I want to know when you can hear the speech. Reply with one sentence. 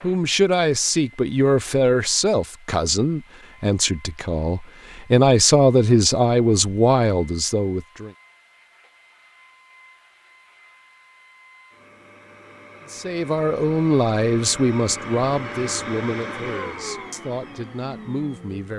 The speech can be heard from 0.0 to 8.1 s and from 12.8 to 18.7 s.